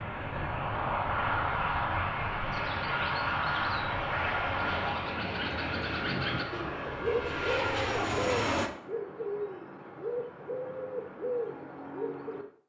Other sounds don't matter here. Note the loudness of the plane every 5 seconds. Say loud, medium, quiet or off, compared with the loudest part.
loud, loud, off.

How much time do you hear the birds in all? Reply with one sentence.
The birds can be heard for 10 seconds in total.